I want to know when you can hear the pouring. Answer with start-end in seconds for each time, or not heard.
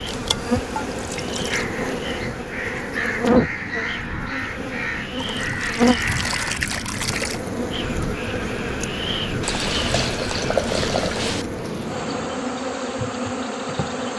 0.1-1.6, 5.2-7.4, 9.4-11.4.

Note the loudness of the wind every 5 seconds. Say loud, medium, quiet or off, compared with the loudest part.
medium, loud, loud.